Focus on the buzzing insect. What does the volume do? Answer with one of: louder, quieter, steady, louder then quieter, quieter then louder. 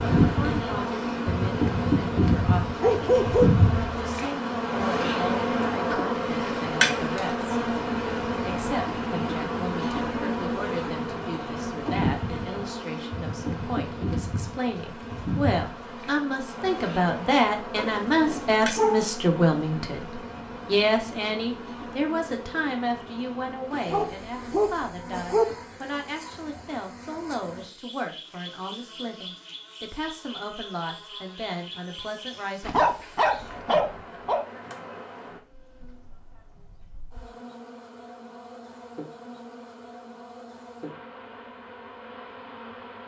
quieter.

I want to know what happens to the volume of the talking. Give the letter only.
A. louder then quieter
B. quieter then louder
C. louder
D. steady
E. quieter
A.